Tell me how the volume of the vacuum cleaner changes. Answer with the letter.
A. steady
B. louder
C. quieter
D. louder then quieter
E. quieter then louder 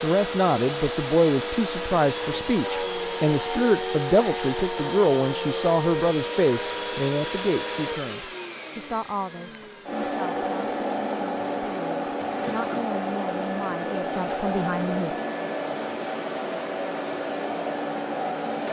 A.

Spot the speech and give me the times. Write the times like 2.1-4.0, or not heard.
0.0-15.2.